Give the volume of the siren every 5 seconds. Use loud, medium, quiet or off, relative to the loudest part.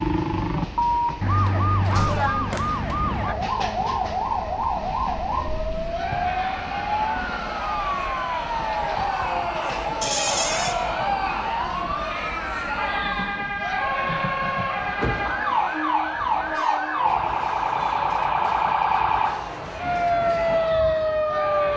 loud, medium, medium, loud, loud.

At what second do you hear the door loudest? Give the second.
10 s.